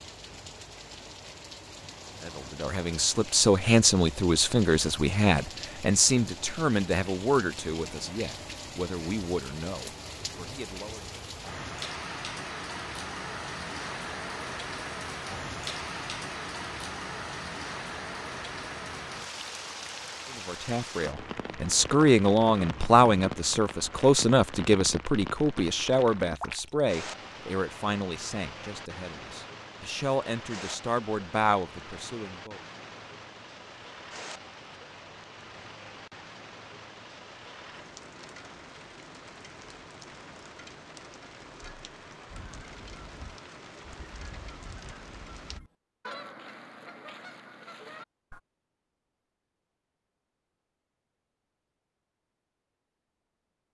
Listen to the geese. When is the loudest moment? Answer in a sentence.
The volume of the geese peaks at 46 seconds.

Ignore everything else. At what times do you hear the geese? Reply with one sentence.
The geese can be heard from 42.2 to 48.4 s.